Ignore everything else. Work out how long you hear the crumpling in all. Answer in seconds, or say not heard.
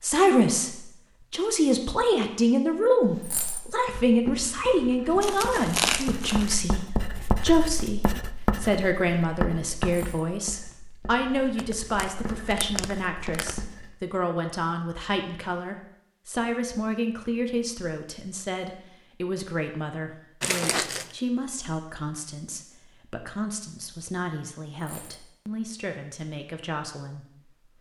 4 s.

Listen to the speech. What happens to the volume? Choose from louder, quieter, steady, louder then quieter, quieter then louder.
quieter.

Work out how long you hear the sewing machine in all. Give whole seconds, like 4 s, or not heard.
not heard.